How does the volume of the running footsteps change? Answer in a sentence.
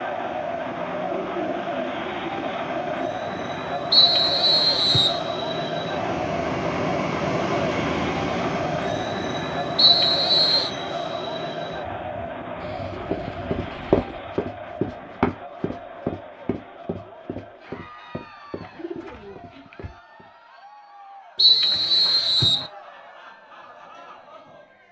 The loudness of the running footsteps goes down.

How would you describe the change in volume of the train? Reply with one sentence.
The volume of the train goes up, then down.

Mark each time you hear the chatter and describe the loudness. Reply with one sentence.
You can hear the chatter from 0.0 to 24.8 s, getting quieter.